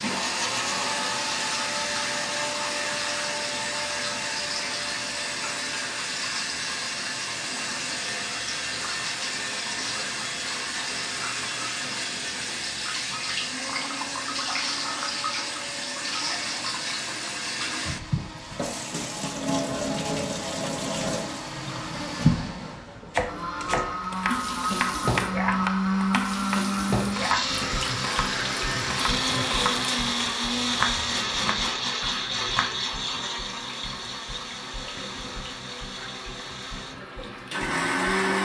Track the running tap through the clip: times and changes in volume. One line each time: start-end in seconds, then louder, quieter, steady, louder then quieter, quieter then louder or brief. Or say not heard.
0.0-38.3 quieter.